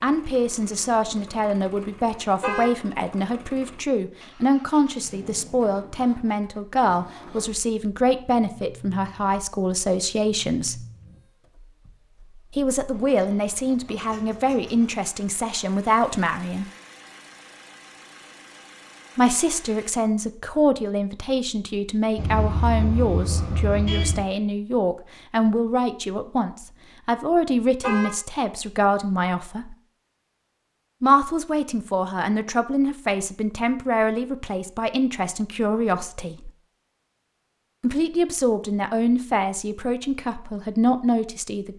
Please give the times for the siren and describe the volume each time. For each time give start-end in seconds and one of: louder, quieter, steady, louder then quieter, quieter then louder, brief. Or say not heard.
not heard.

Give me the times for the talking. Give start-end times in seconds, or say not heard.
0.0-10.8, 12.6-16.6, 19.1-29.8, 31.0-36.5, 37.8-41.7.